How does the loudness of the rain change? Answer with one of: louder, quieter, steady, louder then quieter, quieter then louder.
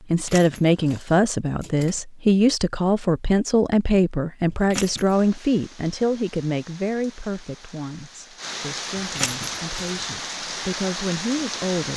louder.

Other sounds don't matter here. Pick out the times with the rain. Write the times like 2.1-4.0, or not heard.
5.1-11.9.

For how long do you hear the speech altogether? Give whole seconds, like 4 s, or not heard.
12 s.